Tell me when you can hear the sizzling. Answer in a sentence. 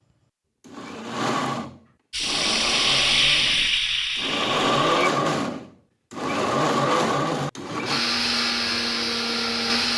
The sizzling can be heard from 2.1 to 5.0 s.